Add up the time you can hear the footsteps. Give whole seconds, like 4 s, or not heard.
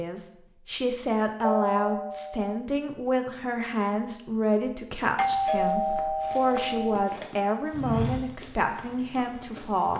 4 s.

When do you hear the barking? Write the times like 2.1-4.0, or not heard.
not heard.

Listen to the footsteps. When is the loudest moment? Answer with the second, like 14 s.
8 s.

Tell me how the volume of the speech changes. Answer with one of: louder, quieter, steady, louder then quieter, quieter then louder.
steady.